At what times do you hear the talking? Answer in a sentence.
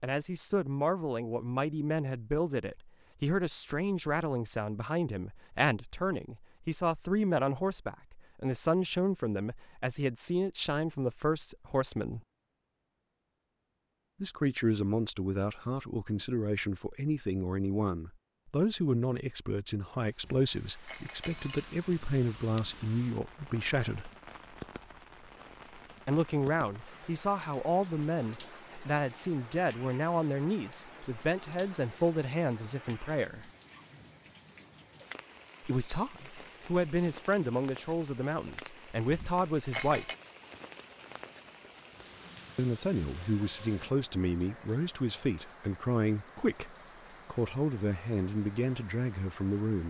You can hear the talking from 0.0 to 12.2 s, from 14.2 to 24.1 s, from 26.1 to 33.5 s, from 35.6 to 40.1 s and from 42.5 to 49.8 s.